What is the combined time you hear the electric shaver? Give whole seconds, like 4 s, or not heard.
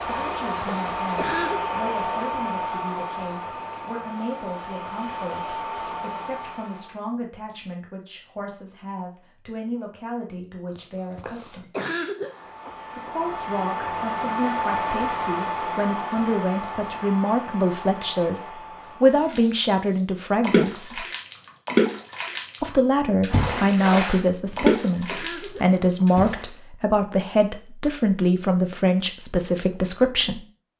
not heard.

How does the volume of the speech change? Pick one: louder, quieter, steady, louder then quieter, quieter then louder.
louder.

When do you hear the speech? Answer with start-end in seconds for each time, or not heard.
0.0-11.7, 12.9-21.1, 22.6-30.4.